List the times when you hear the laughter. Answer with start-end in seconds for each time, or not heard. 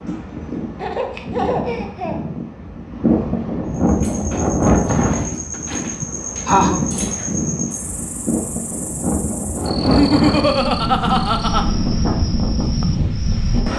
0.8-2.2, 5.5-6.8, 9.8-11.7.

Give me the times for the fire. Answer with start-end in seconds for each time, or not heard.
not heard.